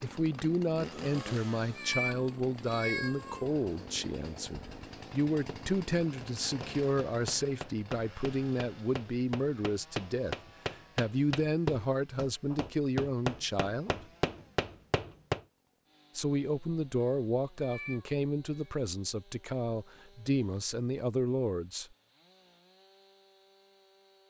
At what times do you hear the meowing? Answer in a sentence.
The meowing can be heard from 1.1 to 3.5 s and from 17.0 to 18.7 s.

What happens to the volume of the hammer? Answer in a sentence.
The loudness of the hammer goes up.